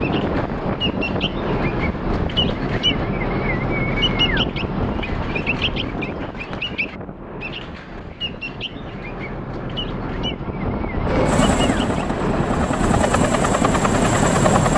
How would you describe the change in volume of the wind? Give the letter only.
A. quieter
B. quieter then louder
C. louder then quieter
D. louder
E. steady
B.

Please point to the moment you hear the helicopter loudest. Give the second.
14 s.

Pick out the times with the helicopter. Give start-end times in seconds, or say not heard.
11.1-14.7.